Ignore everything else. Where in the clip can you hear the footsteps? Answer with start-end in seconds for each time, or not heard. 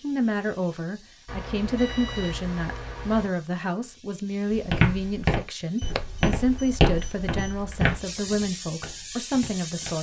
4.5-9.9.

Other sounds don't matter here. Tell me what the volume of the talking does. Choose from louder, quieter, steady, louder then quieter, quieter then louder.
steady.